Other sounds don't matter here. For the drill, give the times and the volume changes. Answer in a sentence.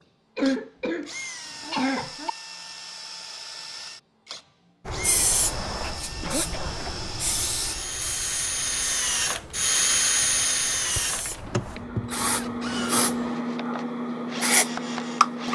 You can hear the drill from 0.0 to 15.5 s, getting louder then quieter.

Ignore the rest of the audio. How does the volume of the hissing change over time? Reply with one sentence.
The loudness of the hissing goes down, then up.